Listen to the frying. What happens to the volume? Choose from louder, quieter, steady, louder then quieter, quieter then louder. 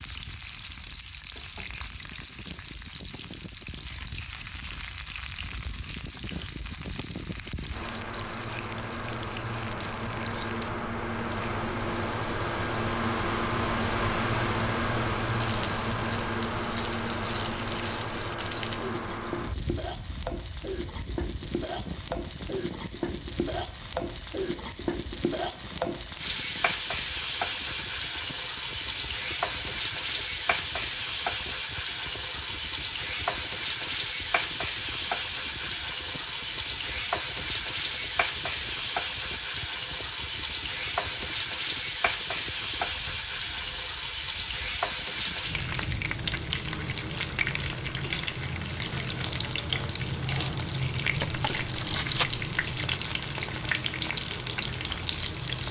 louder.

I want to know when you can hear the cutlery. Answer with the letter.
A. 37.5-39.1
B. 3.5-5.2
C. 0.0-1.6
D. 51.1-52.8
D.